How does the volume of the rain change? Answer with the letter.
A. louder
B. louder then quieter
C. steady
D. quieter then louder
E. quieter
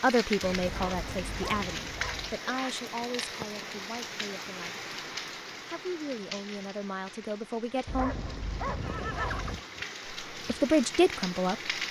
D.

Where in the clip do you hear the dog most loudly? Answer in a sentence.
The volume of the dog peaks at 9 seconds.